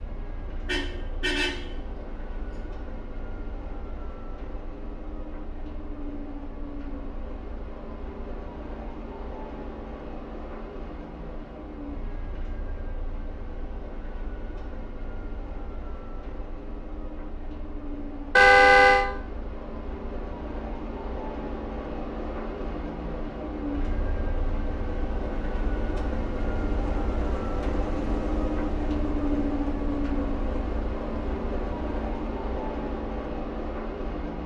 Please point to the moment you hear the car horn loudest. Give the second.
19 s.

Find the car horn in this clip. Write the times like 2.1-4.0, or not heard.
0.7-1.6, 18.4-19.1.